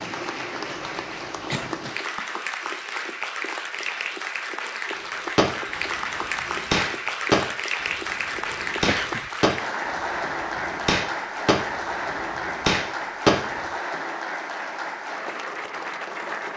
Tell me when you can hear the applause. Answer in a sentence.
The applause can be heard from 0.0 to 16.5 s.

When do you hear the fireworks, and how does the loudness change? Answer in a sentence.
The fireworks can be heard from 5.0 to 13.6 s, at a steady volume.